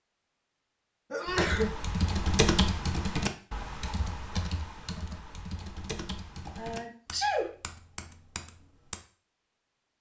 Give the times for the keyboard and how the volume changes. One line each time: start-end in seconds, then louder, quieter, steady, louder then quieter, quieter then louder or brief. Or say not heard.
1.2-9.0 quieter.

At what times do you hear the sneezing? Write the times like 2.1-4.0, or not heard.
1.1-1.7, 6.5-7.5.